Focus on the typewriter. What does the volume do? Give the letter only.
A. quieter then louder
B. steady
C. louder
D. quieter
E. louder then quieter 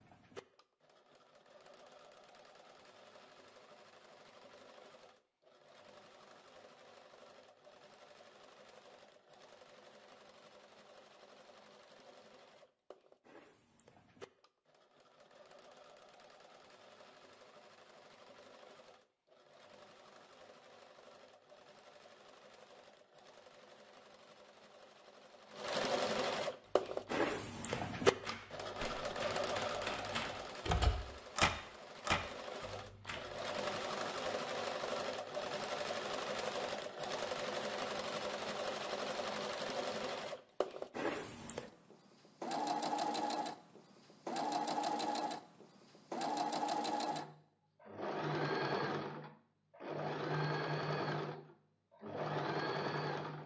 C.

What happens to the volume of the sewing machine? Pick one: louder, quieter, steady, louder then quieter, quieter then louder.
louder.